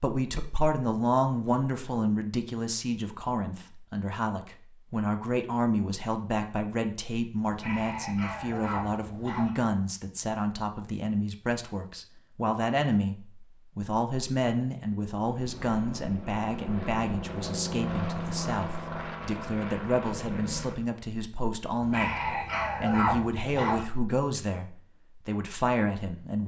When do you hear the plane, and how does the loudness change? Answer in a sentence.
The plane can be heard from 15.3 to 20.9 s, getting louder then quieter.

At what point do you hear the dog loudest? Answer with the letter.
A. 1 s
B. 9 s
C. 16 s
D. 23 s
D.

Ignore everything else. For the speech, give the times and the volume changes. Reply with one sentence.
The speech can be heard from 0.0 to 26.4 s, at a steady volume.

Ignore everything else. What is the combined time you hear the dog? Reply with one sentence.
You can hear the dog for 4 seconds altogether.